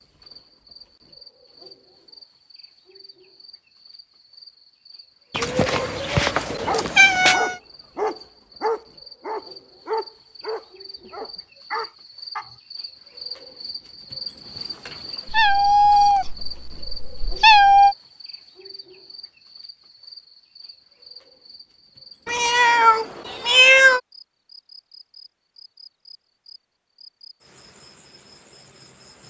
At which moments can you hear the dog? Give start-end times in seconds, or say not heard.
6.7-12.6.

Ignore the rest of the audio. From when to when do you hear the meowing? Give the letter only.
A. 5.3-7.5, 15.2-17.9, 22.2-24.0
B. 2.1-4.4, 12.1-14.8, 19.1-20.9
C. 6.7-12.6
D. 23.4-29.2
A.